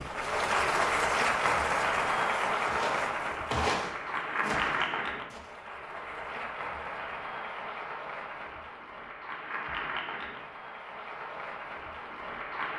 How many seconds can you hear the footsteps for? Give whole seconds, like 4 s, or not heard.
3 s.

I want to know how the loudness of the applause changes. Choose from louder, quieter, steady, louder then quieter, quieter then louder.
quieter.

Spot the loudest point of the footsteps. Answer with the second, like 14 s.
4 s.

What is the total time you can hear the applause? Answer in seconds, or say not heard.
13 s.